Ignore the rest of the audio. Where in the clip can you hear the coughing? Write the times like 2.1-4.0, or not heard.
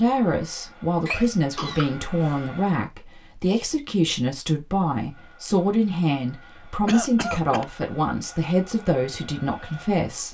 1.1-2.7, 6.8-7.7.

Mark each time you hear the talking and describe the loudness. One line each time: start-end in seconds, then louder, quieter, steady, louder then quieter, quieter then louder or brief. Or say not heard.
0.0-10.2 steady.